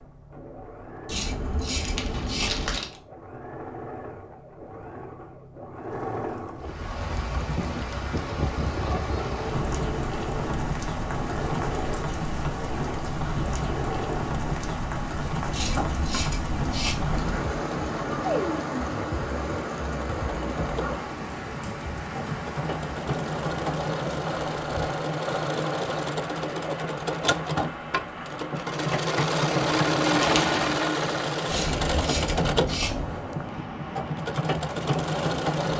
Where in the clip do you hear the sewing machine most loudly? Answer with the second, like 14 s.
30 s.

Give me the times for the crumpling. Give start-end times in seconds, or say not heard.
1.8-3.0, 30.1-30.6.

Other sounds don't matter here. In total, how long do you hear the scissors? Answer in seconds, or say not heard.
5 s.